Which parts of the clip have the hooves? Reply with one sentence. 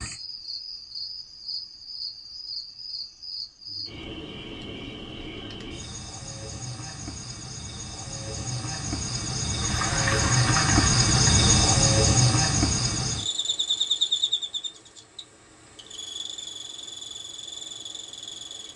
The hooves can be heard from 9.6 to 11.5 s.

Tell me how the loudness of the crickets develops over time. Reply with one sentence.
The loudness of the crickets goes up, then down.